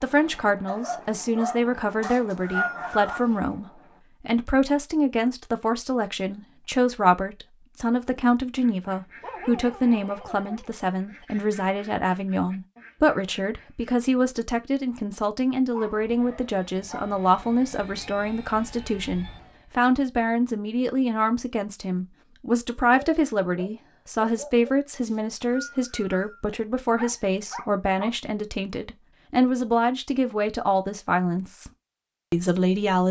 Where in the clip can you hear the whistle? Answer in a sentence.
You can hear the whistle from 2.0 to 3.2 s and from 25.0 to 26.2 s.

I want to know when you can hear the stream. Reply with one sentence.
You can't hear the stream here.